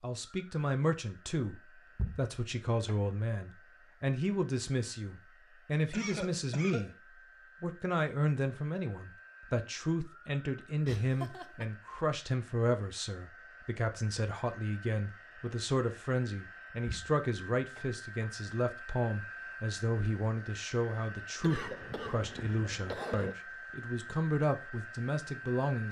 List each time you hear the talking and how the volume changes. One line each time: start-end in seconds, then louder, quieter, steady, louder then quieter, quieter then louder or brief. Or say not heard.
0.0-7.0 steady
7.6-25.8 steady.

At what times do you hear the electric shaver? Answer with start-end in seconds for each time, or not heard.
not heard.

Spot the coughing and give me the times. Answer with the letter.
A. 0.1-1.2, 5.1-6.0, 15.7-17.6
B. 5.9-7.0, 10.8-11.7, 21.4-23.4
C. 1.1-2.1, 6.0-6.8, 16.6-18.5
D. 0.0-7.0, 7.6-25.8
B.